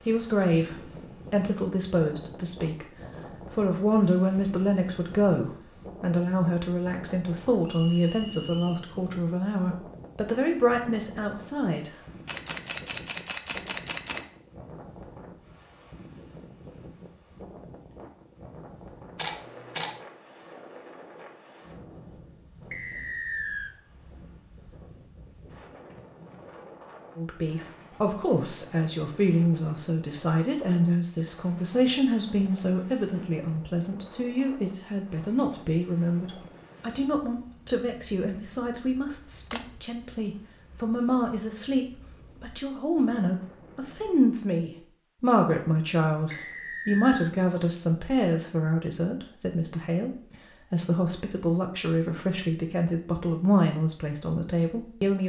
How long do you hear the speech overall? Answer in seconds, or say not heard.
40 s.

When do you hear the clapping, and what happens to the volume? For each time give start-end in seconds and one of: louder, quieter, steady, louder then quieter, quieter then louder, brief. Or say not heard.
not heard.